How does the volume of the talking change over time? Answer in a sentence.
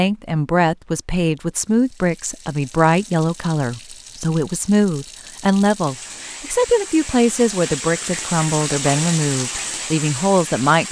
The loudness of the talking stays about the same.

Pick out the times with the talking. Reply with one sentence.
You can hear the talking from 0.0 to 10.8 s.